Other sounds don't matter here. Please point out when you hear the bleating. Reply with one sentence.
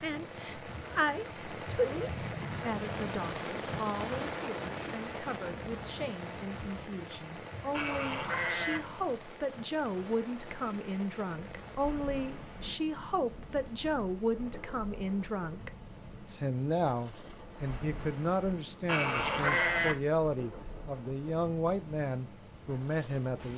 You can hear the bleating from 7.7 to 8.8 s and from 18.9 to 19.9 s.